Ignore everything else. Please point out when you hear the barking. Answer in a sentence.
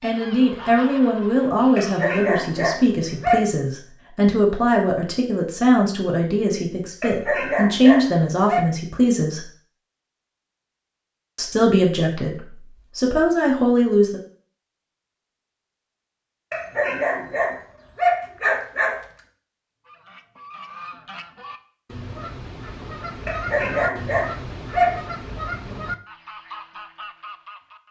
The barking can be heard from 1.8 to 3.5 s, from 7.0 to 8.6 s, from 16.5 to 19.0 s and from 23.2 to 25.0 s.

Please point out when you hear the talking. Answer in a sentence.
You can hear the talking from 0.0 to 9.4 s and from 11.3 to 14.2 s.